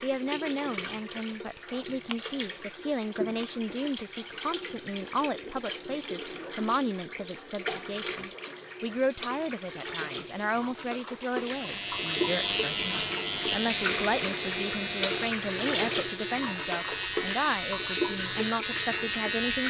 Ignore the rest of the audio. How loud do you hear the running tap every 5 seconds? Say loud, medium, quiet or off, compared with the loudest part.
medium, medium, loud, loud.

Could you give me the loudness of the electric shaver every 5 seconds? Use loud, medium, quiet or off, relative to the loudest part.
off, off, loud, loud.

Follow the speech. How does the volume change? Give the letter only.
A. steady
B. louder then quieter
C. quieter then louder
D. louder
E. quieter
A.